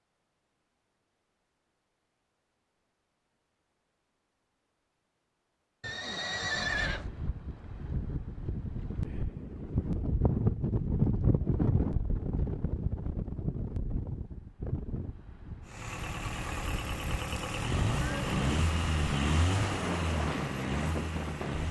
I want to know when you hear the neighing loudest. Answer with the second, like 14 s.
7 s.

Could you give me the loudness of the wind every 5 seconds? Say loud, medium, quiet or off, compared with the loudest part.
off, medium, loud, medium, medium.